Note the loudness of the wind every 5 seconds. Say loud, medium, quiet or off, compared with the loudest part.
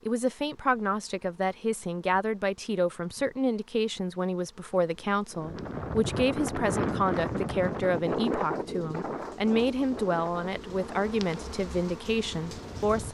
off, loud, medium.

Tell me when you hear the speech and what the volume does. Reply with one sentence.
The speech can be heard from 0.1 to 13.1 s, at a steady volume.